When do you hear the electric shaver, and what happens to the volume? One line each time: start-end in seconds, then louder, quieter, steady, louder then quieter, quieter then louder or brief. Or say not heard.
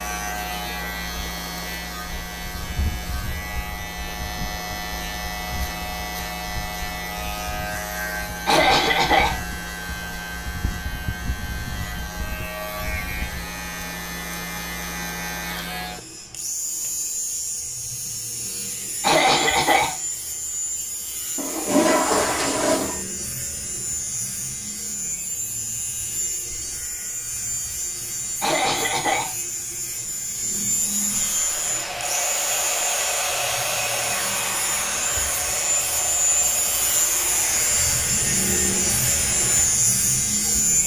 0.0-40.8 louder.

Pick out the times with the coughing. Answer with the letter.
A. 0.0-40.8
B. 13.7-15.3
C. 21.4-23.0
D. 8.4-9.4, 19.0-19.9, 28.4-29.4
D.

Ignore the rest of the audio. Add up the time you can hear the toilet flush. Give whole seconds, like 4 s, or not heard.
2 s.